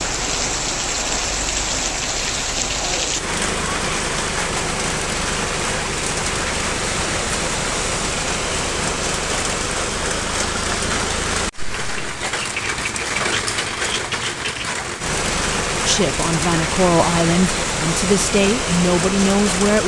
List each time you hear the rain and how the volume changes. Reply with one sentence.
You can hear the rain from 0.0 to 19.8 s, at a steady volume.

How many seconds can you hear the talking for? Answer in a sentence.
The talking can be heard for 4 seconds in total.